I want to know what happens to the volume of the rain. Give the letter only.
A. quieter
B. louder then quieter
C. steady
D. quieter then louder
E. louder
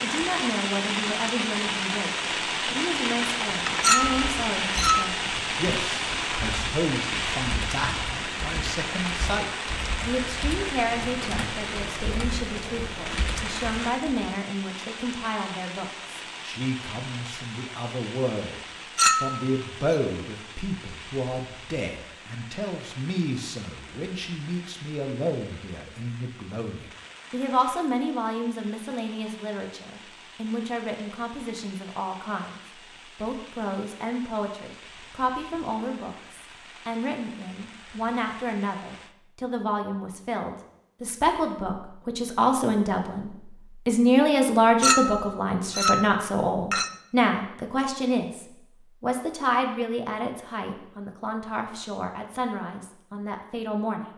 A.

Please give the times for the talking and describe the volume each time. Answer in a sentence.
The talking can be heard from 0.0 to 32.5 s, at a steady volume; and from 33.1 to 54.0 s, getting louder then quieter.